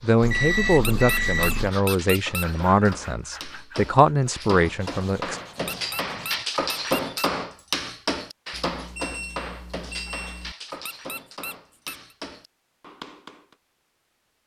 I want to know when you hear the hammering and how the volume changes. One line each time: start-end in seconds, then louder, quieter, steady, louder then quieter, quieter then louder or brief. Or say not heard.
1.6-13.6 louder then quieter.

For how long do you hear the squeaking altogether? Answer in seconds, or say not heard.
5 s.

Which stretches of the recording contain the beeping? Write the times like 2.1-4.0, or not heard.
0.2-1.7, 8.5-10.6.